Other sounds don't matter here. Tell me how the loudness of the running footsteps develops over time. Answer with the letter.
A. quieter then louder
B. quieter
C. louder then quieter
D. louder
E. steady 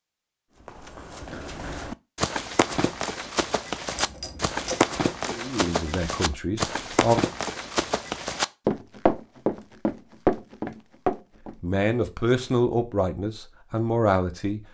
D.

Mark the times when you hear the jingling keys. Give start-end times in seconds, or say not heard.
4.0-4.8.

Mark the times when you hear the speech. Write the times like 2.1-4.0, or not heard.
5.2-7.2, 11.6-14.6.